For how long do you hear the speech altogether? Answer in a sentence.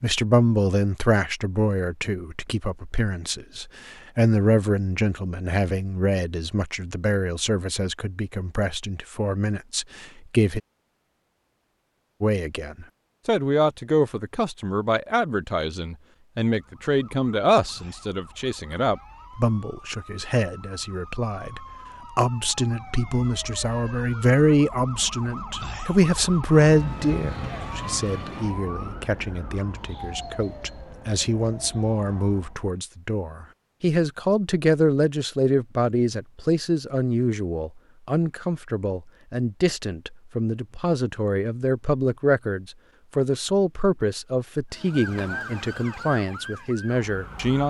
The speech can be heard for 46 seconds in total.